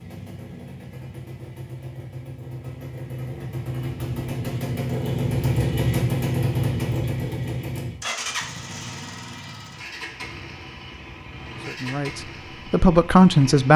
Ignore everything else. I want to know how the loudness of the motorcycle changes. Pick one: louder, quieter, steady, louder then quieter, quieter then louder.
louder then quieter.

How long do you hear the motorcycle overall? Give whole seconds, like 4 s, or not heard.
14 s.